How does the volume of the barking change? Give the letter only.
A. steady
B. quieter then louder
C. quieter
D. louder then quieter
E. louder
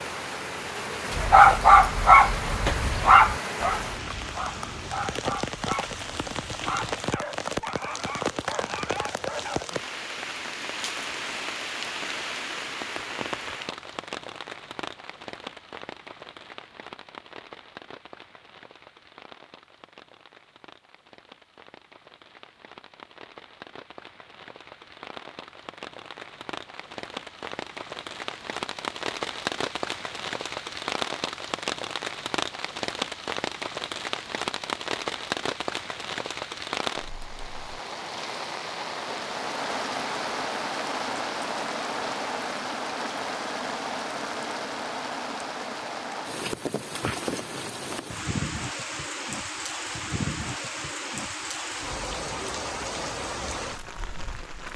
C.